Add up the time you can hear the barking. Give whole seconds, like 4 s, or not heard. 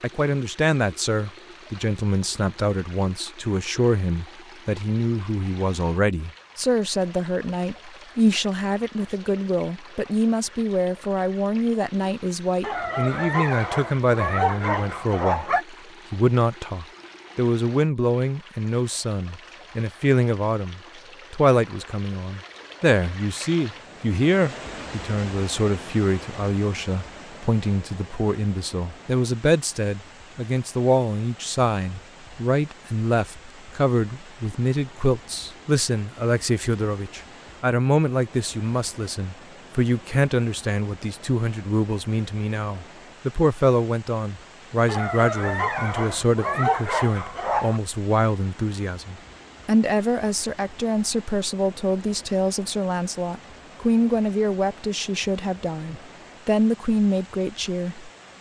6 s.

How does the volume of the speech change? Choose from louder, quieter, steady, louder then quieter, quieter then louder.
steady.